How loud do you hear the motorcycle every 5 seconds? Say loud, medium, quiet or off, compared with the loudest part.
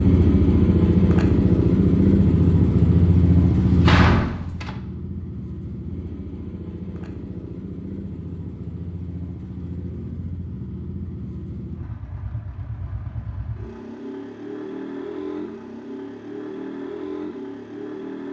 loud, quiet, quiet, quiet.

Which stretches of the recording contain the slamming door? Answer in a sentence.
The slamming door can be heard from 3.6 to 4.8 s.